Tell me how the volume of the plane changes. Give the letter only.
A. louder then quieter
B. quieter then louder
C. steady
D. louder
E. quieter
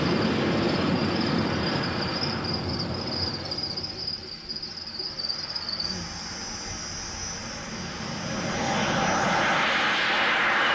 B.